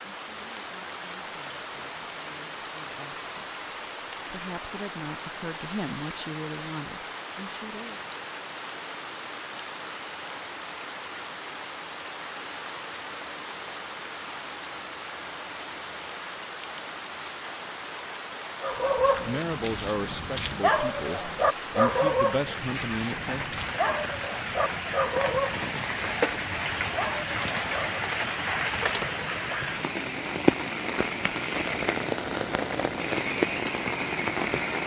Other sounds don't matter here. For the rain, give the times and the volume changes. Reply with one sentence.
The rain can be heard from 0.0 to 34.8 s, getting louder.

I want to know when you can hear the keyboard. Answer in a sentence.
You can't hear the keyboard here.